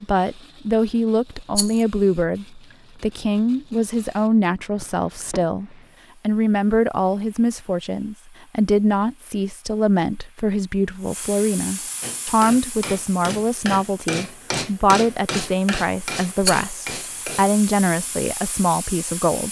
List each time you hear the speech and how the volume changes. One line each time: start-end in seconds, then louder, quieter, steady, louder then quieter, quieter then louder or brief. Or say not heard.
0.0-19.4 steady.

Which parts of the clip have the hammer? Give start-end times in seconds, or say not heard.
12.0-17.6.